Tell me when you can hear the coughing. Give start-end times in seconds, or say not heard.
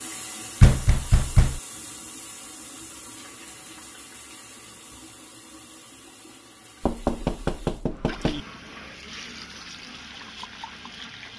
not heard.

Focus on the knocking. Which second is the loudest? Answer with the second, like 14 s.
1 s.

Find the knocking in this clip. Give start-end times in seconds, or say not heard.
0.6-1.6, 6.8-8.4.